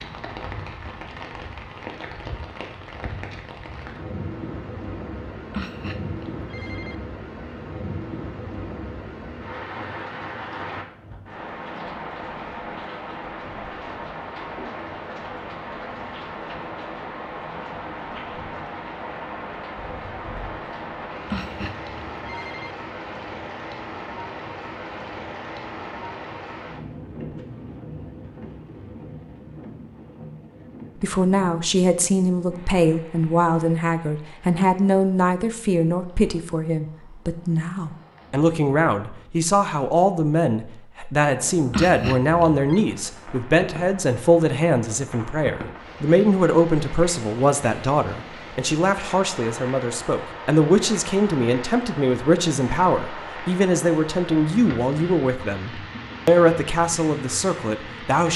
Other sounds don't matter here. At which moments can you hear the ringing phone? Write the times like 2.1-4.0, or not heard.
5.5-7.0, 21.2-22.8, 41.7-42.8.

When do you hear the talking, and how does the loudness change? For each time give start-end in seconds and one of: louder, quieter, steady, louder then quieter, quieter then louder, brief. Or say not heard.
31.0-58.3 steady.